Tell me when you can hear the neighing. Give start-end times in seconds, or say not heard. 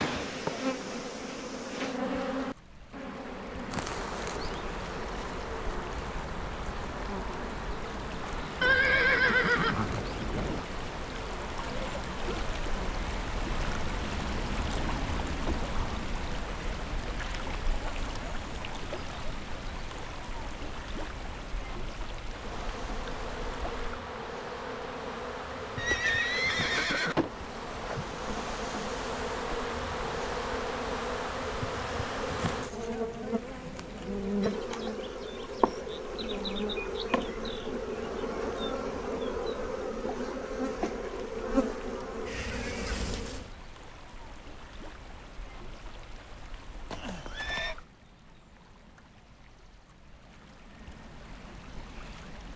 8.6-10.6, 25.8-27.1, 46.9-47.8.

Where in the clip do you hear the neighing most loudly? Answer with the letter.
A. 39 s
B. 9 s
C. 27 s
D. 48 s
B.